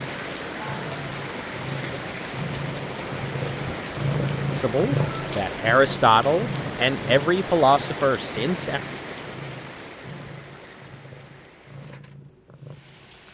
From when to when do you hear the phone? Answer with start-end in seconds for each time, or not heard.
not heard.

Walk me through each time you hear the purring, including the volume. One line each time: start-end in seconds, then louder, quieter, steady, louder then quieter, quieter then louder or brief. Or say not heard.
0.0-13.2 louder then quieter.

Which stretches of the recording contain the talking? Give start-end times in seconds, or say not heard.
4.5-8.8.